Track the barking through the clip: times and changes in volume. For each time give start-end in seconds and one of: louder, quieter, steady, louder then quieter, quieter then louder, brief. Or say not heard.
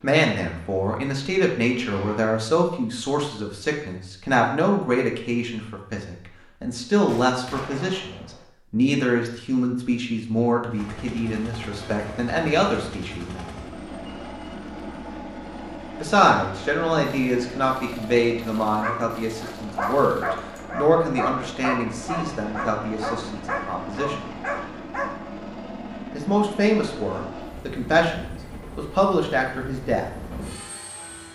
18.8-25.1 steady.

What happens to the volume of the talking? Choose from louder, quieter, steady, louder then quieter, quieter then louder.
steady.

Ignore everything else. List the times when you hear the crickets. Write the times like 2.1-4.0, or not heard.
not heard.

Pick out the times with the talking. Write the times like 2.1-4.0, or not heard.
0.0-13.6, 16.0-24.2, 26.1-30.1.